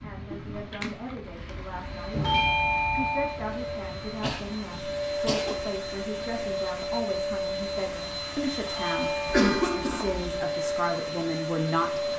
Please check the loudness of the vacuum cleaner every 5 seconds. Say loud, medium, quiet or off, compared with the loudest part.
medium, loud, loud.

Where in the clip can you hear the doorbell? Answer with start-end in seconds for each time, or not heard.
2.2-3.4, 8.8-10.2.